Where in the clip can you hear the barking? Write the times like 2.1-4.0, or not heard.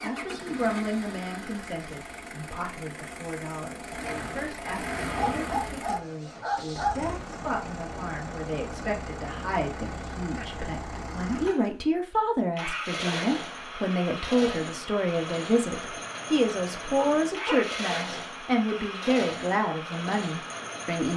5.1-7.0, 16.9-17.7.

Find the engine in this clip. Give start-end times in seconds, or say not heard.
0.0-21.1.